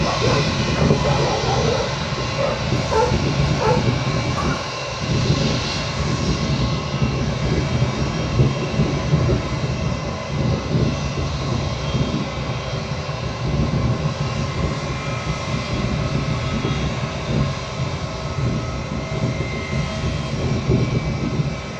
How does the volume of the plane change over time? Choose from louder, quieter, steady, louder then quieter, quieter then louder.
steady.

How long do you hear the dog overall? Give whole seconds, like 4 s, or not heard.
5 s.